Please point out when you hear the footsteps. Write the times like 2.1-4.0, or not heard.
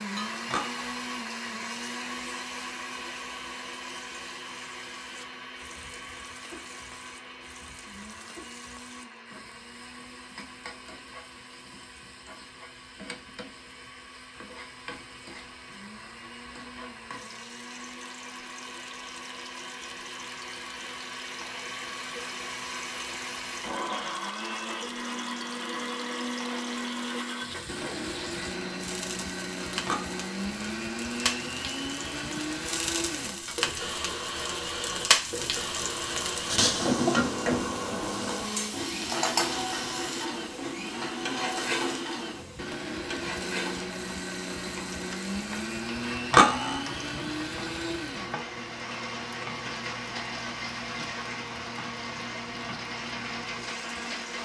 not heard.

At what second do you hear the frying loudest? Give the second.
37 s.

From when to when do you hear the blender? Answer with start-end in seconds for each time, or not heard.
0.0-54.4.